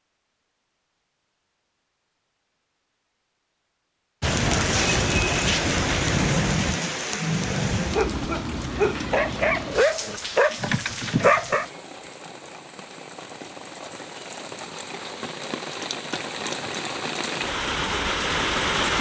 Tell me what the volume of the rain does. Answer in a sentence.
The volume of the rain goes down, then up.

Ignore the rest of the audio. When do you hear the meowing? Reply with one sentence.
You can't hear the meowing here.